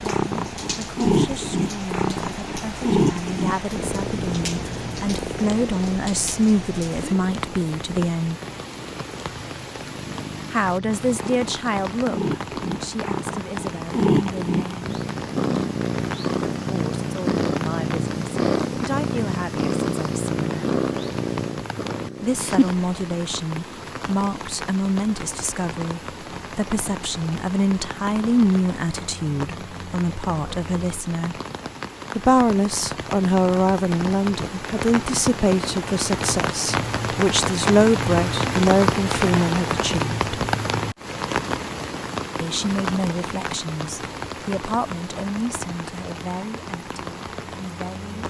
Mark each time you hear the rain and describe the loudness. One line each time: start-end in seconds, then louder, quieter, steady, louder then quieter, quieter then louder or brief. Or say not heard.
0.0-48.2 louder.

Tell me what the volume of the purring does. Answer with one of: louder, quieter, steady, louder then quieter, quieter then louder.
quieter then louder.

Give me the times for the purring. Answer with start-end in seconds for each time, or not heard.
0.0-22.9.